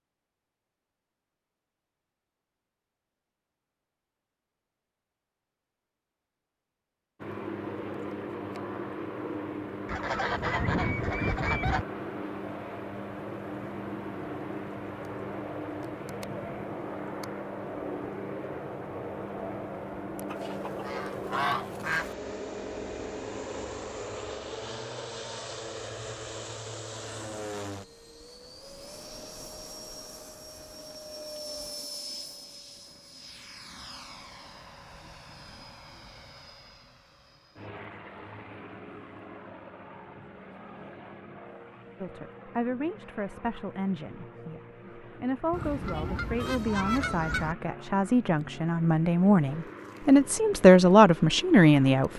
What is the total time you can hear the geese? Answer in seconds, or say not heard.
6 s.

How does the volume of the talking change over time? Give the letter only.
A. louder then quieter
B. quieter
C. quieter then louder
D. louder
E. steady
D.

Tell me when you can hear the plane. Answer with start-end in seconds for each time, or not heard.
7.2-52.1.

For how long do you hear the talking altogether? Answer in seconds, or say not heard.
10 s.